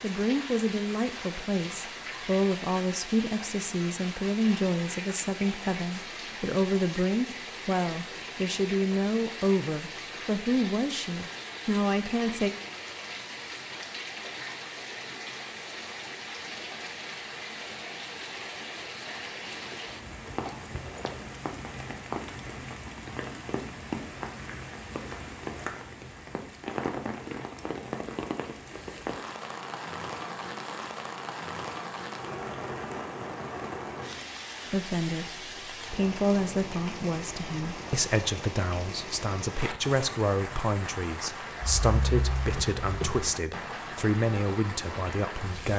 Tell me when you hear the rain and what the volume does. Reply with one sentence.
You can hear the rain from 0.0 to 45.7 s, at a steady volume.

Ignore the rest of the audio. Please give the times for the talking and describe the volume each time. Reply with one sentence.
The talking can be heard from 0.0 to 12.5 s, at a steady volume; and from 34.7 to 45.7 s, at a steady volume.